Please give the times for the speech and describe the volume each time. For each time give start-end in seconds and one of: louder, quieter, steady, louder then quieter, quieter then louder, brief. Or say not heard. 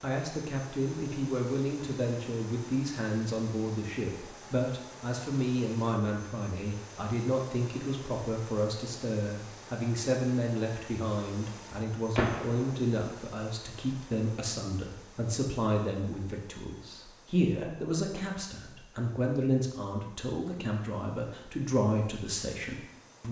0.0-23.2 steady.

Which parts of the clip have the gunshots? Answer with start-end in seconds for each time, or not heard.
12.2-12.8.